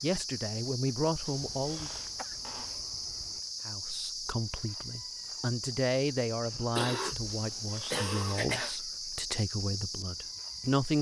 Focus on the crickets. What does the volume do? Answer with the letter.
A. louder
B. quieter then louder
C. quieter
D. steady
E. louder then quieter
D.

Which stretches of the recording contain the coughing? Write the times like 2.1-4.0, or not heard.
1.4-3.4, 6.5-8.8.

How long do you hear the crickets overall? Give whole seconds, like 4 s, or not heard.
11 s.